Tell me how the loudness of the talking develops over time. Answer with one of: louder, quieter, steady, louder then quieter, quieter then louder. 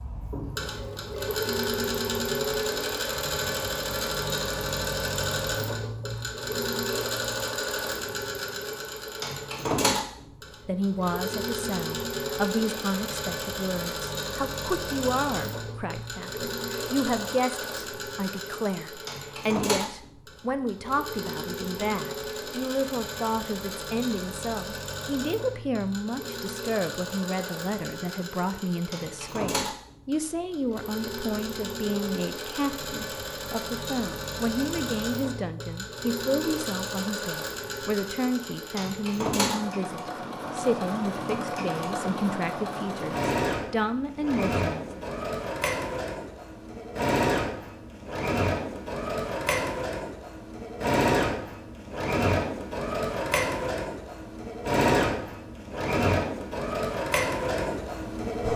steady.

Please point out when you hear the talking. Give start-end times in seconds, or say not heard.
10.7-45.0.